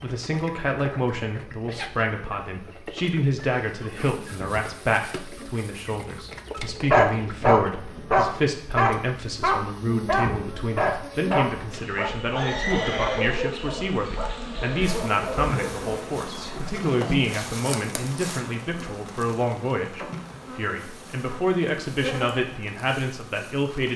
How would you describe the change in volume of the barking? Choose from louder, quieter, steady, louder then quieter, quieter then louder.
quieter.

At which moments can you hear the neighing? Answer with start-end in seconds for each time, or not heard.
12.3-13.3.